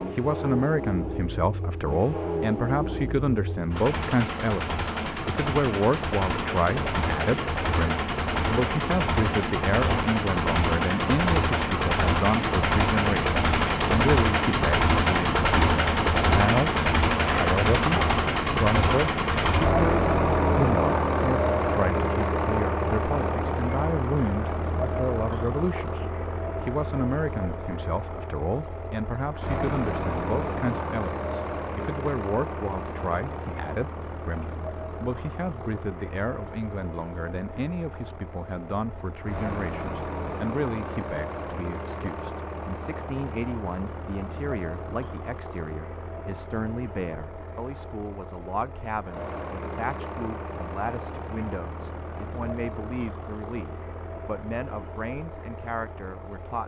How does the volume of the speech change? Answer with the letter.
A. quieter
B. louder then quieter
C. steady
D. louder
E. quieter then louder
A.